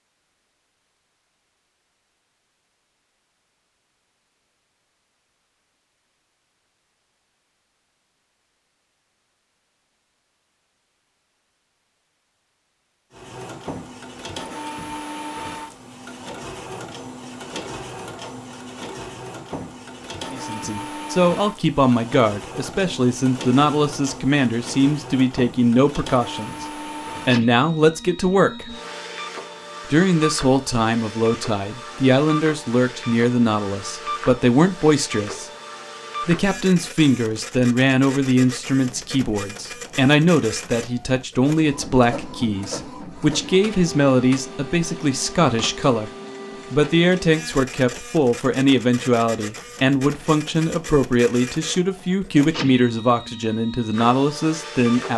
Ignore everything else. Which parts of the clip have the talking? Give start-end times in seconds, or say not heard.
20.3-28.8, 29.9-35.5, 36.2-46.1, 46.7-55.1.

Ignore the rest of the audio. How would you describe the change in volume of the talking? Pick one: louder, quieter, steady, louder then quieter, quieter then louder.
steady.